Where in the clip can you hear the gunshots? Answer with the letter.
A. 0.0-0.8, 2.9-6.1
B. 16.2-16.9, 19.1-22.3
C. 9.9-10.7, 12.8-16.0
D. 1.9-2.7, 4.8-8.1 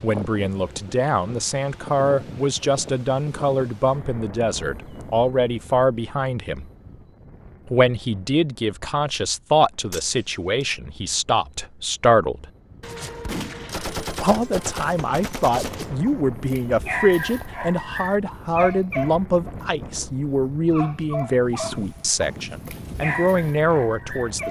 C.